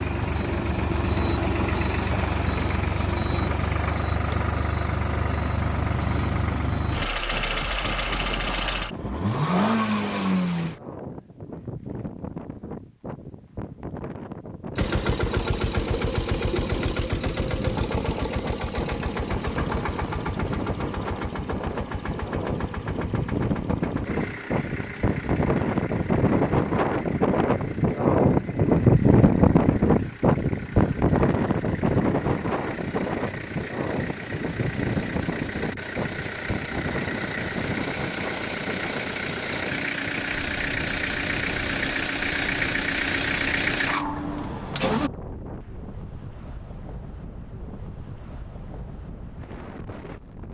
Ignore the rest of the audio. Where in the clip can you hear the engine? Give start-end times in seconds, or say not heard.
0.0-10.8, 14.8-45.1.